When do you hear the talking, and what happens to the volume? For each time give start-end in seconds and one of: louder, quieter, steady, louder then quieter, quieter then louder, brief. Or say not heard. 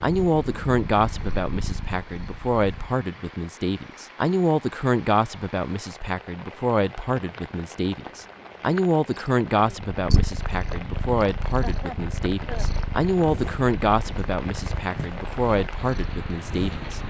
0.0-17.0 steady.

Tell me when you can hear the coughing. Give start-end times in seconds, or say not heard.
11.6-12.7.